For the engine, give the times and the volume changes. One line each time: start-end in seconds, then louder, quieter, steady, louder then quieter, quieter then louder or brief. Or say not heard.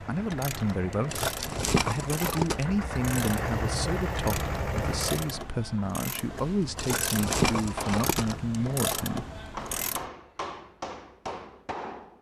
0.0-5.5 louder.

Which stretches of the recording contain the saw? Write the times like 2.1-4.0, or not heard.
not heard.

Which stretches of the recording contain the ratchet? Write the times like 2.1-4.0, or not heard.
0.0-10.1.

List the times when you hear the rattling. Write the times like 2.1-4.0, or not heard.
1.1-2.6, 6.8-8.3.